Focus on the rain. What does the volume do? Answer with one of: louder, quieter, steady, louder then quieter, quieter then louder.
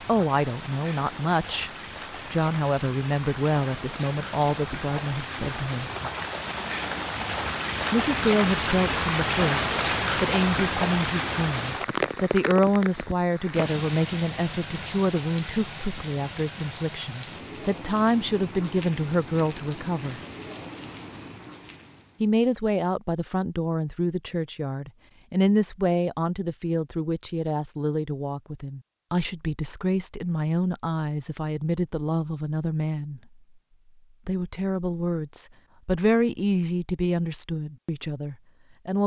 louder then quieter.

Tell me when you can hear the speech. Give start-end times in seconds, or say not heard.
0.1-1.7, 2.3-5.9, 7.9-20.2, 22.2-33.2, 34.2-39.0.